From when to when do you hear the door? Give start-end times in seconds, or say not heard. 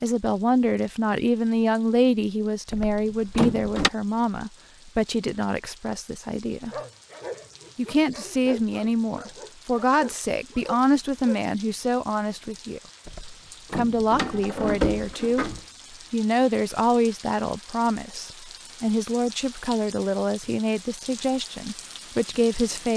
2.7-3.9, 13.1-15.6.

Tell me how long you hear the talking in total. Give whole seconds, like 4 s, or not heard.
20 s.